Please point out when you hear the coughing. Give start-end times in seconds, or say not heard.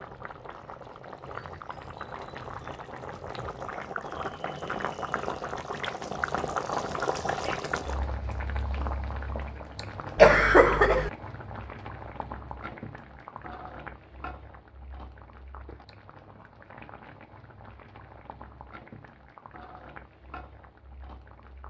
10.2-11.1.